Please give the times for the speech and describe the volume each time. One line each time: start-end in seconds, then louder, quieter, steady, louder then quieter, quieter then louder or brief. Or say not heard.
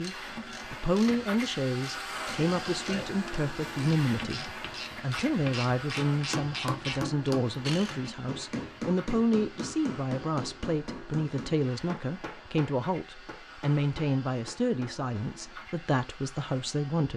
0.0-17.1 steady.